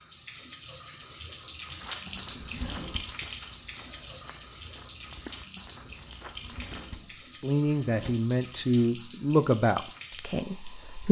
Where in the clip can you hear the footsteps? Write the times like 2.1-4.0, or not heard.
1.6-7.0.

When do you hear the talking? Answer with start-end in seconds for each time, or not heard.
7.2-11.0.